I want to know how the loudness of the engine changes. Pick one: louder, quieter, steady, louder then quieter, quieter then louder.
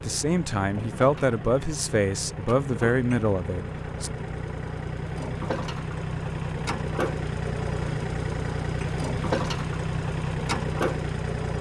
louder.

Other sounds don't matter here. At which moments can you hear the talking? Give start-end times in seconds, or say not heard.
0.0-4.1.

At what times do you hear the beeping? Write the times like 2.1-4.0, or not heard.
not heard.